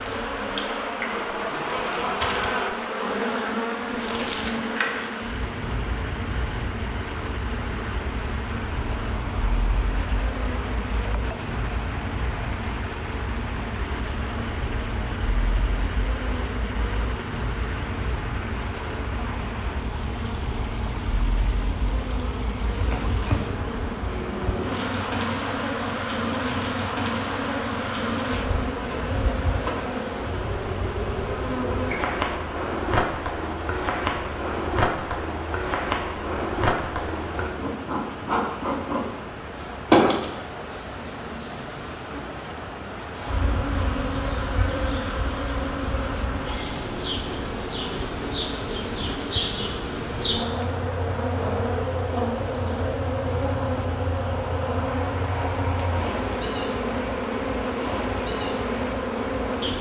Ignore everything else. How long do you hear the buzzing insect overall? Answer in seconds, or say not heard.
60 s.